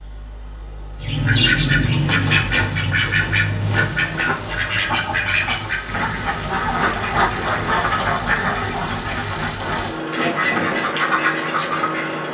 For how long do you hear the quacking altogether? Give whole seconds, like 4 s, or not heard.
11 s.